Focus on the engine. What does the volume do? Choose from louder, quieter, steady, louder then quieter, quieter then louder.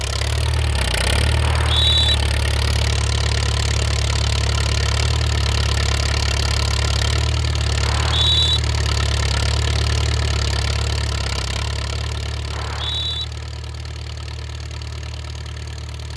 quieter.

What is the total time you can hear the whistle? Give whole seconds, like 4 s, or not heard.
2 s.